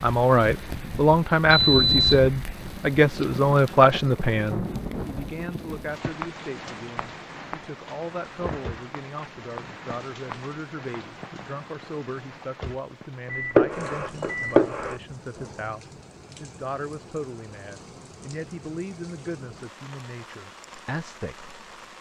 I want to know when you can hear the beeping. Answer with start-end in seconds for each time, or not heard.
1.4-2.4, 13.3-14.9.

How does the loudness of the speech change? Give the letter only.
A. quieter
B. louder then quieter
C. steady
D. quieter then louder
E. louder
A.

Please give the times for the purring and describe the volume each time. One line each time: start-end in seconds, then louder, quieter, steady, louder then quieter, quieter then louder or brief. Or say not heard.
not heard.